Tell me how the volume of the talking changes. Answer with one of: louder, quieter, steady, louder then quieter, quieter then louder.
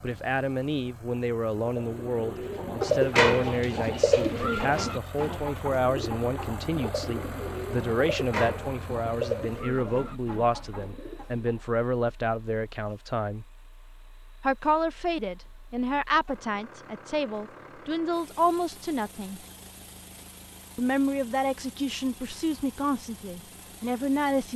steady.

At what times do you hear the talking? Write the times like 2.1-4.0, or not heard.
0.0-13.4, 14.4-19.4, 20.8-24.5.